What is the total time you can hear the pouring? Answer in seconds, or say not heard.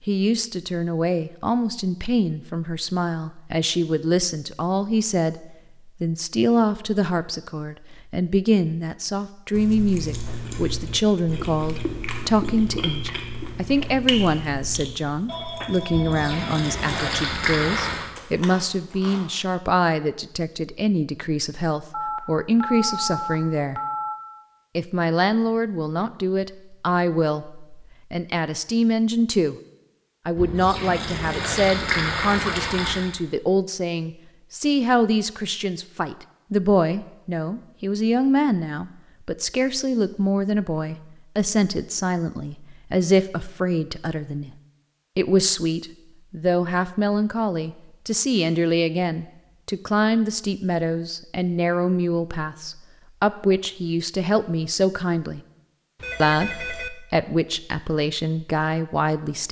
5 s.